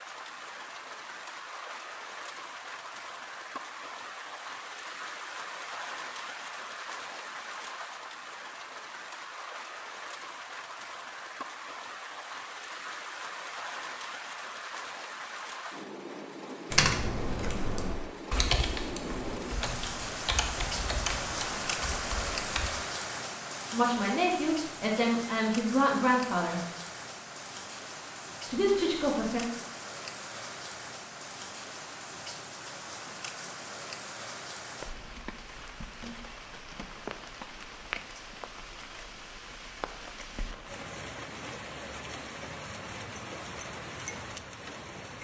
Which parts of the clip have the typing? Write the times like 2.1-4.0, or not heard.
16.7-22.7.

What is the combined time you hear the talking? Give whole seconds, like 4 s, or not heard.
4 s.